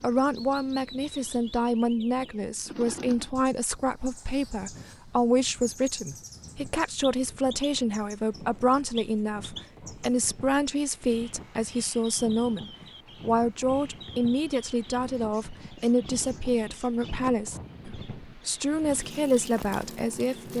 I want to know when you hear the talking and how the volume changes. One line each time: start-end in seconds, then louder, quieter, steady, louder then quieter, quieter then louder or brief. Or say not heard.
0.0-20.5 steady.